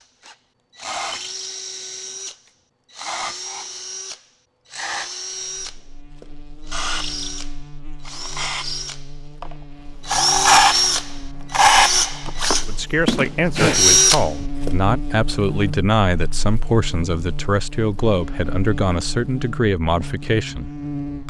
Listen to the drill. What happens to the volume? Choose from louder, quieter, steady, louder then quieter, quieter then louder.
louder.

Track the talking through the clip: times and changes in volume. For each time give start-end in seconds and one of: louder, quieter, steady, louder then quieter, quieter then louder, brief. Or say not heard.
12.7-21.2 steady.